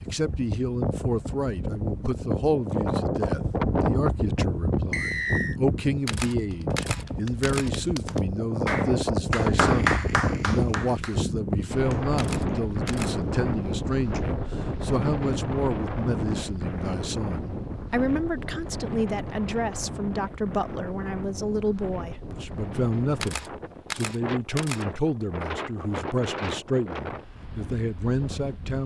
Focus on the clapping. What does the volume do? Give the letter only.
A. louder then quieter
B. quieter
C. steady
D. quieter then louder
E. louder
A.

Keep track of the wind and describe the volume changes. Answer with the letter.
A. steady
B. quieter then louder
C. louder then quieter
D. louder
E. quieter
E.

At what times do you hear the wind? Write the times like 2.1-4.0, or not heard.
0.0-28.8.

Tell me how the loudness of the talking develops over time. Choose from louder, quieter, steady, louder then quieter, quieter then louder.
steady.